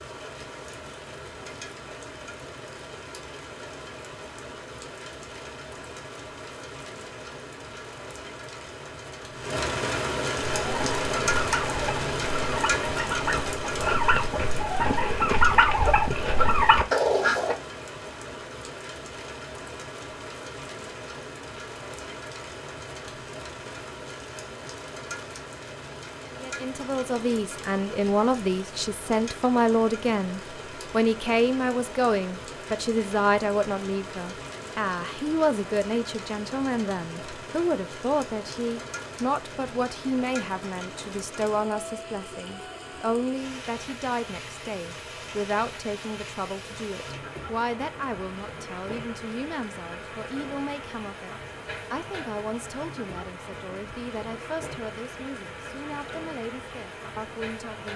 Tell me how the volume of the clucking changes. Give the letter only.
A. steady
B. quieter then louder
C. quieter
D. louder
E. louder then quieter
D.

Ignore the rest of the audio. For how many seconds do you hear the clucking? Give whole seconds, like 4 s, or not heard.
7 s.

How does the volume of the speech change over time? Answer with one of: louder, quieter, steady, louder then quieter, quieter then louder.
quieter.